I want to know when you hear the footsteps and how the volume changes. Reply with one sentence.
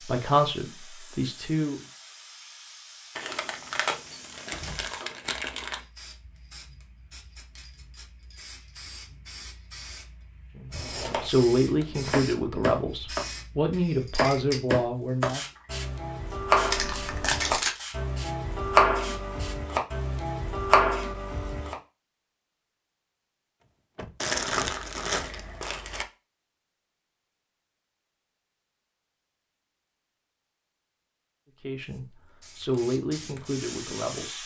The footsteps can't be heard in this clip.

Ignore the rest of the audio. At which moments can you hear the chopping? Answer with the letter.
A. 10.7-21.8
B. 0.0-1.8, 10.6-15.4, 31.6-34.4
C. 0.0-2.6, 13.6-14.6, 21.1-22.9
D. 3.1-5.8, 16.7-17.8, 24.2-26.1
A.